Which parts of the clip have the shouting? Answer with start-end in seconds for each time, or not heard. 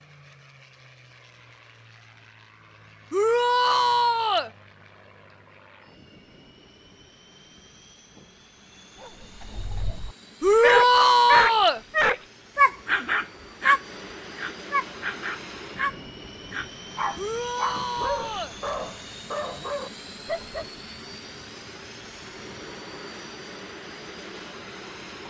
3.1-4.5, 10.4-11.8, 17.1-18.6.